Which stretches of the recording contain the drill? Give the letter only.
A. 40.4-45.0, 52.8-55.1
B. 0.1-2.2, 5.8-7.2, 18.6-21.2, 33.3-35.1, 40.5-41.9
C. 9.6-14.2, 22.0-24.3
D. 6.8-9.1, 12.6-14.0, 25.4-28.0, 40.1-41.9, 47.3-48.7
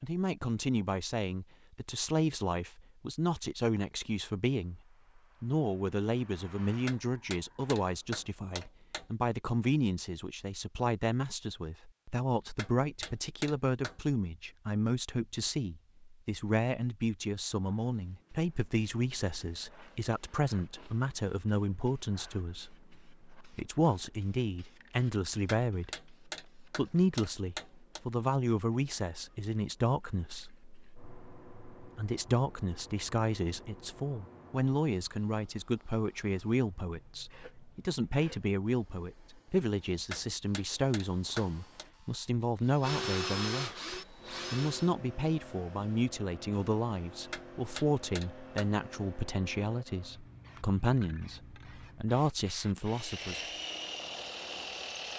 A.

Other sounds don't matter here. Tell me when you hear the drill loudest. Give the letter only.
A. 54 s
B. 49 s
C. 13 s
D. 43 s
D.